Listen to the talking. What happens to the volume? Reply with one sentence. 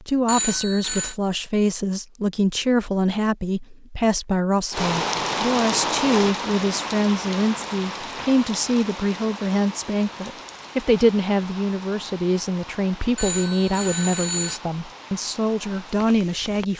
The volume of the talking stays about the same.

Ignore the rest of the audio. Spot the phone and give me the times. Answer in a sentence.
The phone can be heard from 0.2 to 1.1 s and from 13.2 to 14.6 s.